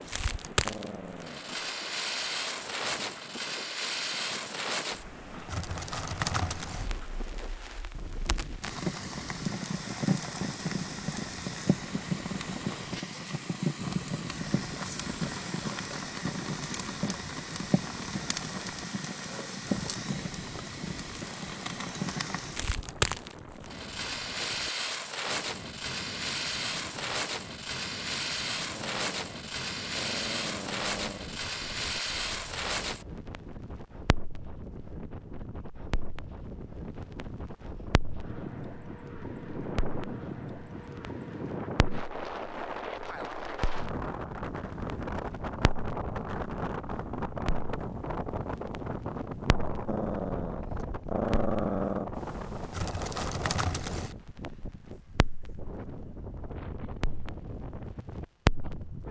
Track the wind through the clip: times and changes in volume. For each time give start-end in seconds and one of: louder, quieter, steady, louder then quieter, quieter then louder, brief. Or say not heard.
0.0-59.0 louder.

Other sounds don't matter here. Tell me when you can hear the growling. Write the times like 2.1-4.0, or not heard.
0.7-1.6, 28.8-31.4, 49.9-52.1.